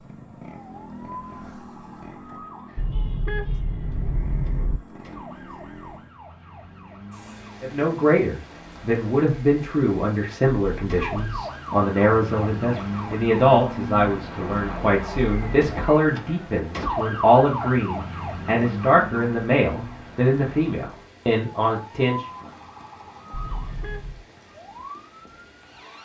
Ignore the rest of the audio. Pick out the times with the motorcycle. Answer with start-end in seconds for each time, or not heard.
0.0-6.2.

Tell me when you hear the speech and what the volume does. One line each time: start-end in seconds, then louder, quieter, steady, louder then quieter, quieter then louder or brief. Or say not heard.
7.6-22.2 steady.